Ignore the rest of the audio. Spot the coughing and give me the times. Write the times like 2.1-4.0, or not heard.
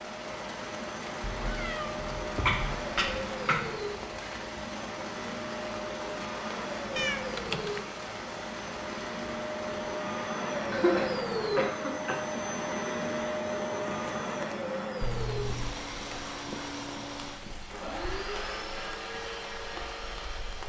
2.5-3.9, 10.7-12.2.